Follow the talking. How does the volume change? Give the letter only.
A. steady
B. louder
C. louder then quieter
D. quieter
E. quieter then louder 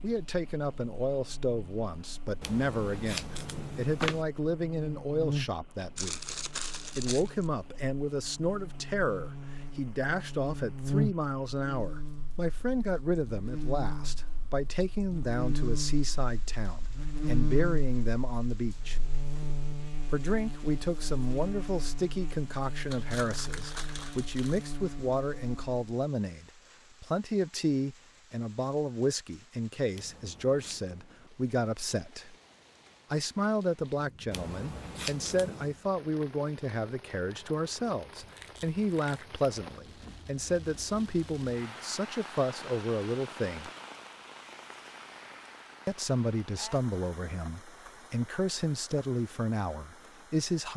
A.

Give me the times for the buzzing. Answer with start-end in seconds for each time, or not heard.
0.0-25.9.